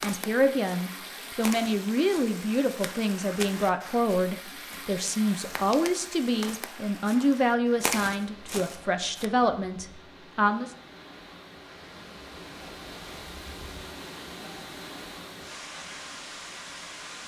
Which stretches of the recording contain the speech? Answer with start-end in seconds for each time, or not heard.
0.0-10.7.